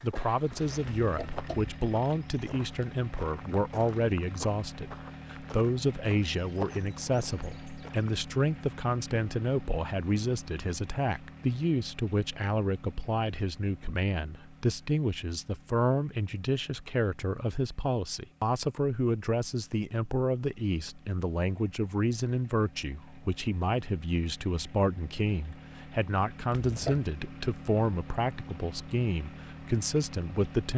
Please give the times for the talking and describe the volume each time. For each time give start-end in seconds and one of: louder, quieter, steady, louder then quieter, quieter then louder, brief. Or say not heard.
0.0-30.7 steady.